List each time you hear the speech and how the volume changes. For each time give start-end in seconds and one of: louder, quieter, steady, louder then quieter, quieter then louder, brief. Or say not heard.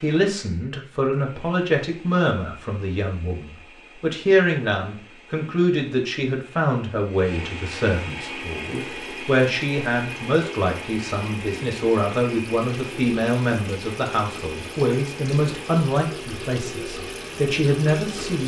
0.0-18.4 steady.